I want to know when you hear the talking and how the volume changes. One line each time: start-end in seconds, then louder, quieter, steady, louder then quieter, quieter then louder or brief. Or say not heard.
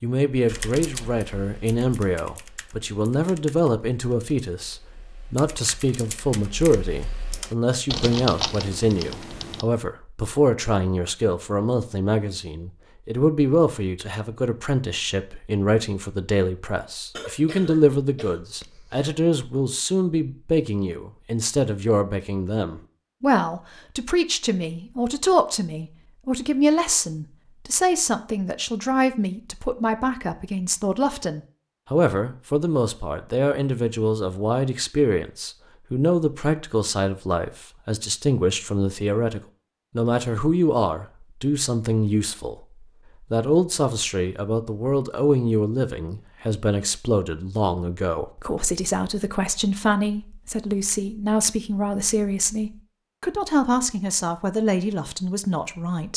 0.0-56.1 steady.